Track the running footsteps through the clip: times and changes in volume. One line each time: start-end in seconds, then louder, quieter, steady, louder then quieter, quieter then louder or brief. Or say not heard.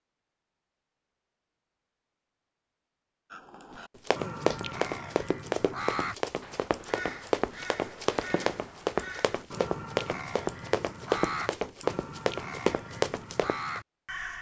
4.0-13.8 steady.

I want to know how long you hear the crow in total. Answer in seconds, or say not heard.
11 s.